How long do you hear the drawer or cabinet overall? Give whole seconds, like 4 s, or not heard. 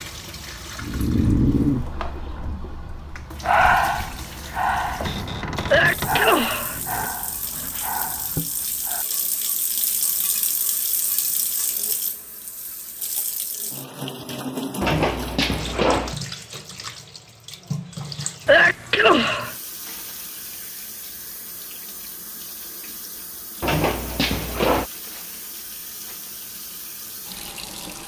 4 s.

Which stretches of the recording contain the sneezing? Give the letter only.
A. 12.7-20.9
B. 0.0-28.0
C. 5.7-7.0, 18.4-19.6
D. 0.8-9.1
C.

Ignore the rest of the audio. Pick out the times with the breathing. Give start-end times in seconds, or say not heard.
0.8-9.1.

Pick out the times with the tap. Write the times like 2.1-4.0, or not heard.
0.0-28.0.